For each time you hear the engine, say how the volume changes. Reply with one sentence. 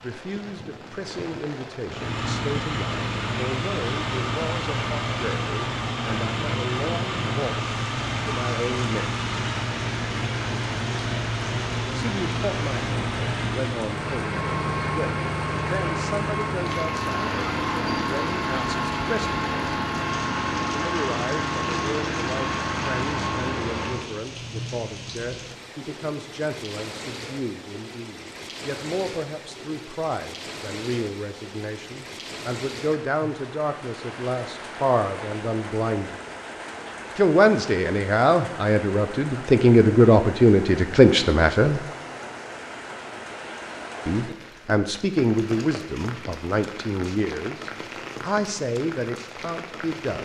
The engine can be heard from 1.9 to 24.1 s, at a steady volume.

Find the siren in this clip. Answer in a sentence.
You can't hear the siren here.